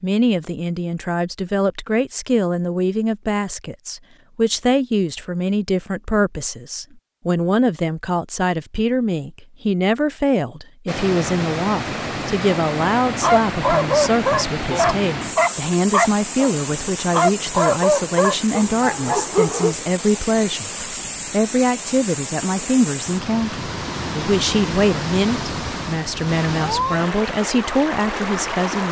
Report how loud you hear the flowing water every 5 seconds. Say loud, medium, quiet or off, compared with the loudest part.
off, off, loud, loud, loud, loud.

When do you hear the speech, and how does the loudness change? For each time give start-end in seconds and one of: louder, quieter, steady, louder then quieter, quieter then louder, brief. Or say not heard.
0.0-28.8 steady.